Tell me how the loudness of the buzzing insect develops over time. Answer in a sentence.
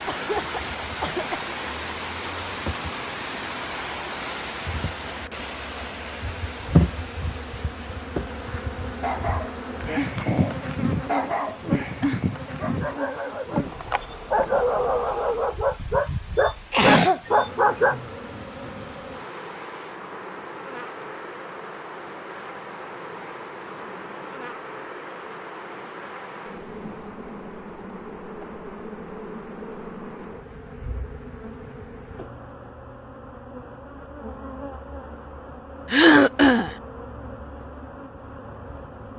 The loudness of the buzzing insect goes down.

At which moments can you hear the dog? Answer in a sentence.
The dog can be heard from 9.0 to 17.9 s.